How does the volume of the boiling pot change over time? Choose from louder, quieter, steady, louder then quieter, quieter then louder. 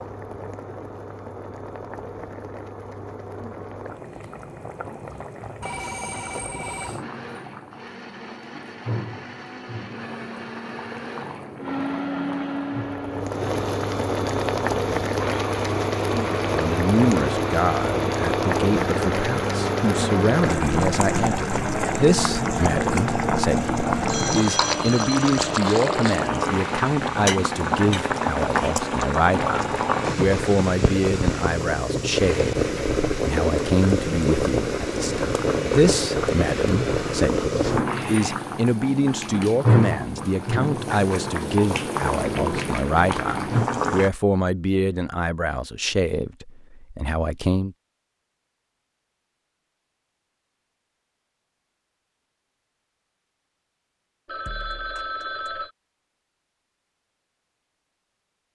louder.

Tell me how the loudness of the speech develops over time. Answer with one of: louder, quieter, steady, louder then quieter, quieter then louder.
steady.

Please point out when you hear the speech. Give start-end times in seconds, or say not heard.
16.5-47.8.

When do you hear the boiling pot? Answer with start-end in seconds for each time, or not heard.
0.0-44.1.